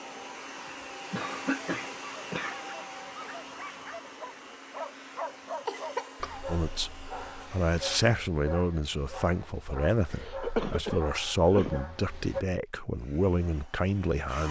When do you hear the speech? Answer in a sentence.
The speech can be heard from 6.5 to 14.4 s.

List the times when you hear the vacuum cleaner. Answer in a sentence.
You can hear the vacuum cleaner from 0.0 to 8.1 s and from 12.9 to 14.4 s.